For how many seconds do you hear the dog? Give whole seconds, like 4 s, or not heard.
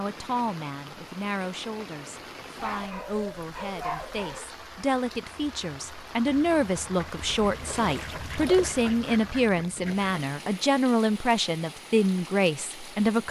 2 s.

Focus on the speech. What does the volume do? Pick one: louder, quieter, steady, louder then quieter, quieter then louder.
louder.